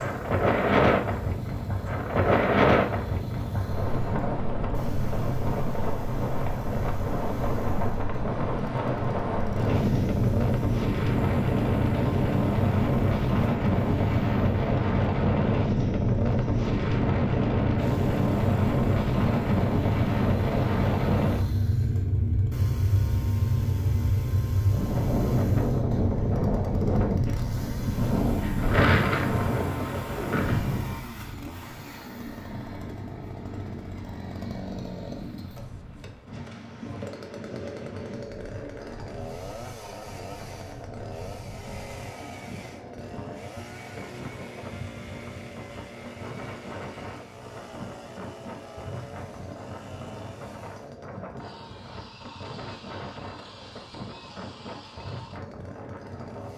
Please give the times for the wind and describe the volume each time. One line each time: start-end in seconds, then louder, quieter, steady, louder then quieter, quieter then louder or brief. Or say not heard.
0.0-56.5 quieter.